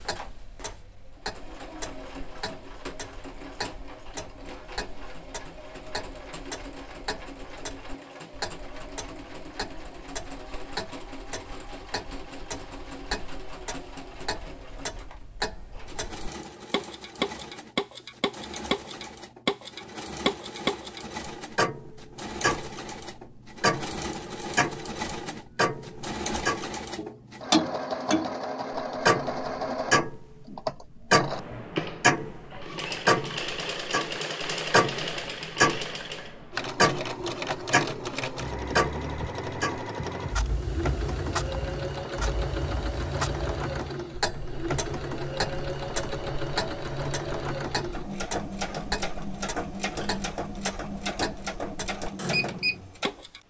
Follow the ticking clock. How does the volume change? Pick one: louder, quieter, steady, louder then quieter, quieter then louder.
louder then quieter.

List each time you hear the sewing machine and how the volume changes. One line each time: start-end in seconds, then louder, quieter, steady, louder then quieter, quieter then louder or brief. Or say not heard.
0.0-53.4 louder.